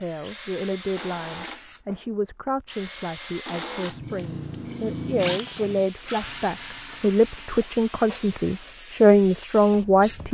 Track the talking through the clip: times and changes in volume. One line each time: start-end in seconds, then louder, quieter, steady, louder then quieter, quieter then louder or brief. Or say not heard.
0.0-10.2 louder.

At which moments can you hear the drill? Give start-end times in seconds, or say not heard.
0.2-8.8.